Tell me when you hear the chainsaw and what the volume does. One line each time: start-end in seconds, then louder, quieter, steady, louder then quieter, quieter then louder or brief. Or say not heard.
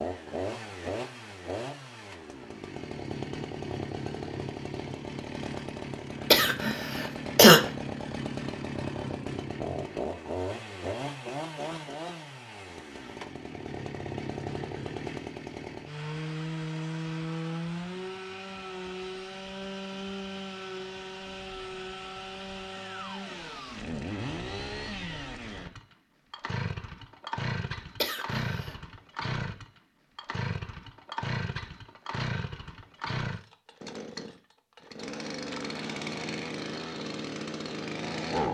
0.0-38.4 steady.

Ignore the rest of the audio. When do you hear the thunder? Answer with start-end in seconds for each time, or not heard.
not heard.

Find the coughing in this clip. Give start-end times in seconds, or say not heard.
6.3-7.6, 28.0-28.8.